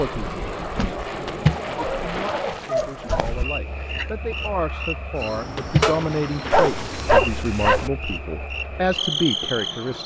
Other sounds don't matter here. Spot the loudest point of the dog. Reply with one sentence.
The loudest moment of the dog is at 7 seconds.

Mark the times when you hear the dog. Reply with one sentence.
You can hear the dog from 0.6 to 3.3 s and from 6.5 to 7.9 s.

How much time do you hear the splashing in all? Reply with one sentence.
You can hear the splashing for 3 seconds altogether.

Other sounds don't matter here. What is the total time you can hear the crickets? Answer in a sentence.
The crickets can be heard for 10 seconds in total.